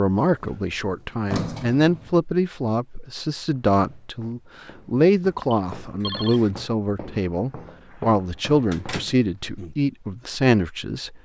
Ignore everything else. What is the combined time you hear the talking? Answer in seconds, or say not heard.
11 s.